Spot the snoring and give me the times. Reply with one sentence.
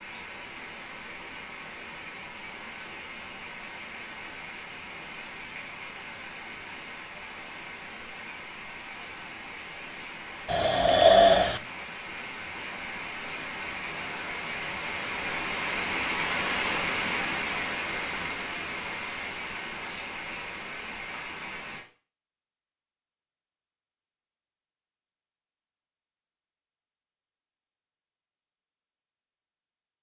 You can hear the snoring from 10.4 to 11.6 s.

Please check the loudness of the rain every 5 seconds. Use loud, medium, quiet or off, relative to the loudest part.
medium, medium, medium, loud, medium, off.